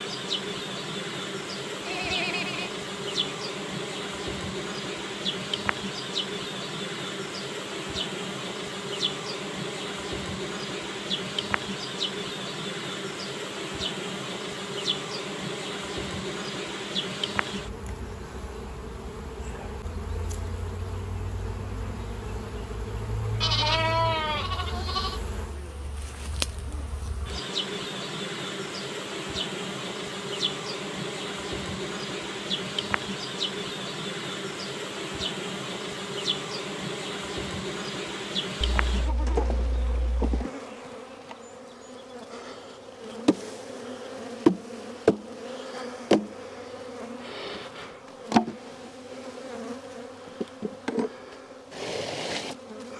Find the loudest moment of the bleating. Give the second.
24 s.